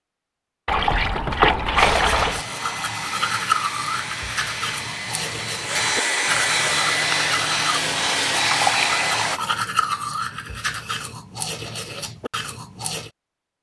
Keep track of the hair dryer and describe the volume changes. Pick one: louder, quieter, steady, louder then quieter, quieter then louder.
louder.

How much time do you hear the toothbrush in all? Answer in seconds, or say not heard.
11 s.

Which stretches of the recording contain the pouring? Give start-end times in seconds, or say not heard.
0.7-2.5, 8.4-9.7.